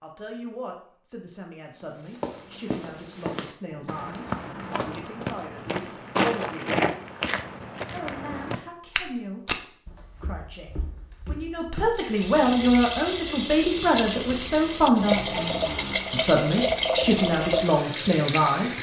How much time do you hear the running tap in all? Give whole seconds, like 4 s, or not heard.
7 s.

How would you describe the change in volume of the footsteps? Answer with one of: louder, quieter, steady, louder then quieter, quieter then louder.
louder then quieter.